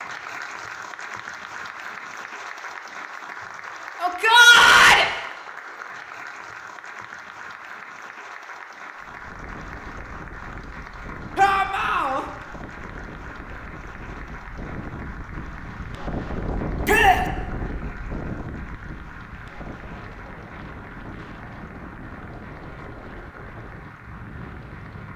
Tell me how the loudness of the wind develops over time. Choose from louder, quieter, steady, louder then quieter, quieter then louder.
louder then quieter.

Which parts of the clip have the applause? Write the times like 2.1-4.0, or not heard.
0.0-25.1.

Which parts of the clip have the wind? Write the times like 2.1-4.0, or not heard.
8.9-25.1.